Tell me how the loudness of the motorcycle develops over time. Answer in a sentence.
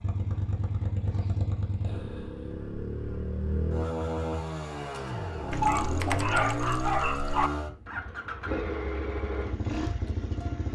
The loudness of the motorcycle stays about the same.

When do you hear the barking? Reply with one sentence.
You can hear the barking from 5.5 to 7.5 s.